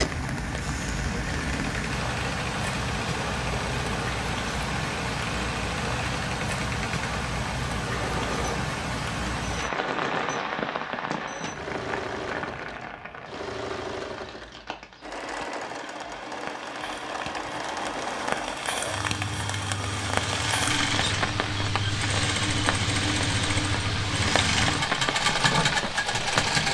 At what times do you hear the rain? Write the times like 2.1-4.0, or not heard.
0.0-26.6.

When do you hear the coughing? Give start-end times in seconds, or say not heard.
not heard.